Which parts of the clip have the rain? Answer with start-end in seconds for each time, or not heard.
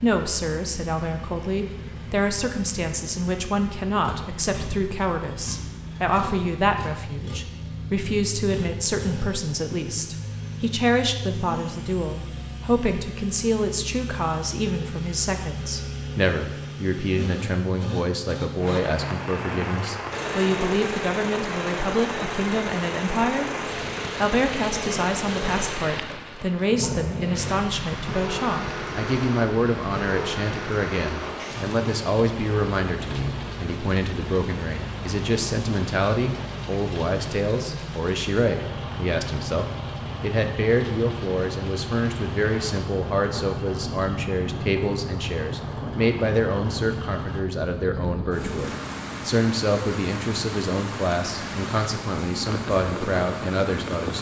18.6-54.1.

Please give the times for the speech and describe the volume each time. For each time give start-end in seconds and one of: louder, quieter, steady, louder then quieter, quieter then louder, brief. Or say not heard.
0.0-54.1 steady.